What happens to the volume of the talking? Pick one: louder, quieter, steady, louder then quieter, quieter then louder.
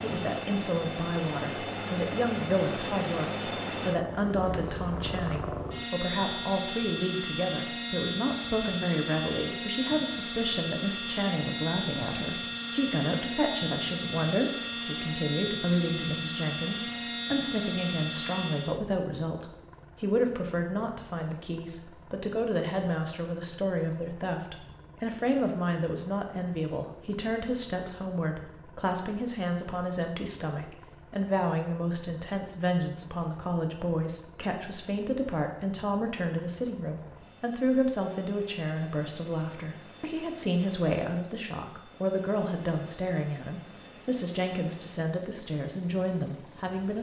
steady.